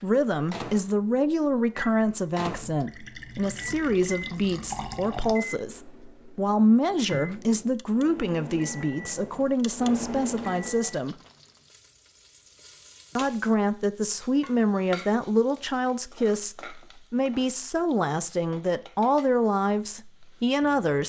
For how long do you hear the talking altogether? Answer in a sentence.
The talking can be heard for 19 seconds in total.